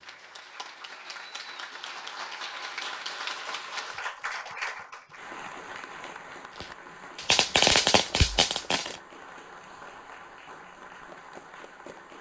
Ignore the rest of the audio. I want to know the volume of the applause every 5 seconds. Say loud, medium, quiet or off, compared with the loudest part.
loud, medium, medium.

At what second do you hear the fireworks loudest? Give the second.
8 s.